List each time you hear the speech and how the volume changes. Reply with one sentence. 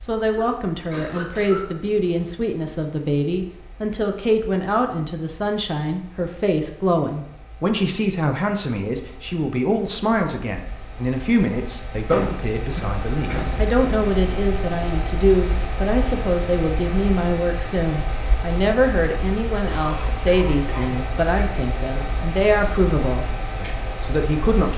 The speech can be heard from 0.0 to 24.7 s, at a steady volume.